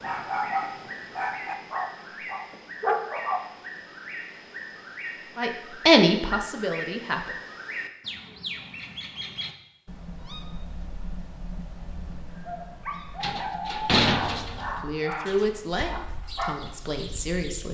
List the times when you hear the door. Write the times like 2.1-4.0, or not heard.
13.2-14.8.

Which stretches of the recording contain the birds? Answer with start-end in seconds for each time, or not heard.
0.0-17.6.